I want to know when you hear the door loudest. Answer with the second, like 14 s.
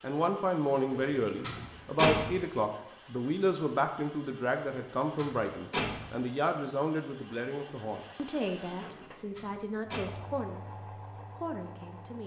2 s.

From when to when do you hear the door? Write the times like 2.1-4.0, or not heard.
0.9-2.5, 4.7-6.2, 8.8-10.3.